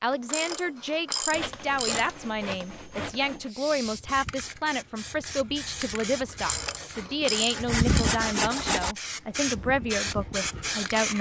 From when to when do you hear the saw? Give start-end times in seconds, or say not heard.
1.3-3.5, 7.0-8.9.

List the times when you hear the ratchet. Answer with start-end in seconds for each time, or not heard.
0.1-2.1, 6.2-8.1.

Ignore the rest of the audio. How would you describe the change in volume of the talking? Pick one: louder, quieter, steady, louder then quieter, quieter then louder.
steady.